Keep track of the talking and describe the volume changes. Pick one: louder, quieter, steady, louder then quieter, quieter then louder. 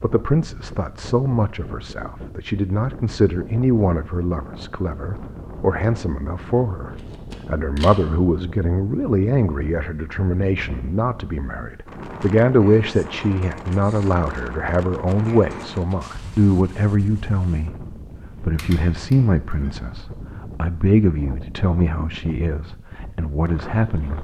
steady.